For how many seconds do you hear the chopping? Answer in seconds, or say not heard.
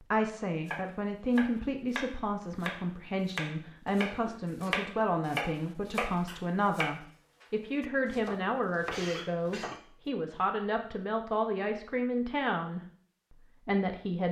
9 s.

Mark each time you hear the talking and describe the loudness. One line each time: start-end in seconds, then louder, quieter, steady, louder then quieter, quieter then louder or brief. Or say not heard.
0.0-14.2 steady.